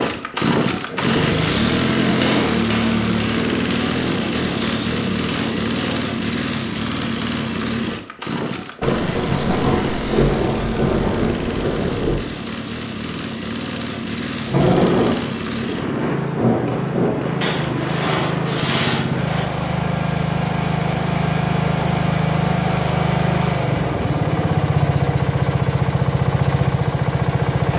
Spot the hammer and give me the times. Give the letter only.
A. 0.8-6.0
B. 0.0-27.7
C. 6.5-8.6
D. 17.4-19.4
A.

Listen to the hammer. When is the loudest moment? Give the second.
2 s.